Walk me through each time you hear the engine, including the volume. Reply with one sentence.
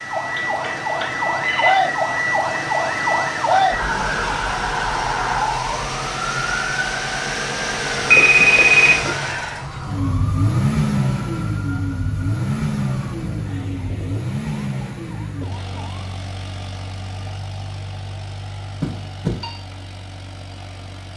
The engine can be heard from 0.0 to 21.1 s, getting louder then quieter.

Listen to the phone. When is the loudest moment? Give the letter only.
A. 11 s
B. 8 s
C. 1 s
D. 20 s
B.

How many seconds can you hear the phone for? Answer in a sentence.
The phone can be heard for 3 seconds in total.